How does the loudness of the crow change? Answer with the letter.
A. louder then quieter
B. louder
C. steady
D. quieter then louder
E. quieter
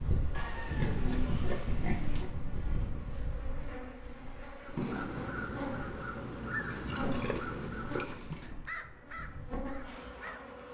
E.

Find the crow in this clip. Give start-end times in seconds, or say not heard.
4.7-10.5.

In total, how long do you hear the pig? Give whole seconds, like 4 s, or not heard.
4 s.